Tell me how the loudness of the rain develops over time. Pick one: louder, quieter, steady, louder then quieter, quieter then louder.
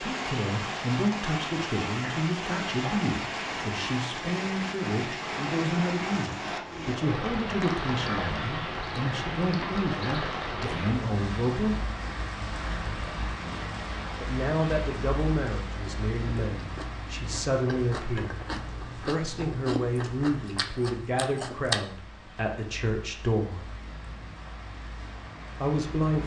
quieter.